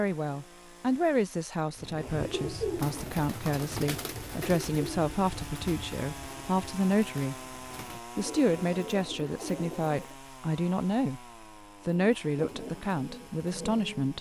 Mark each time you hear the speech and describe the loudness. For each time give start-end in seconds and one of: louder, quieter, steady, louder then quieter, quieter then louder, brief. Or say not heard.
0.0-11.2 steady
11.8-14.1 brief.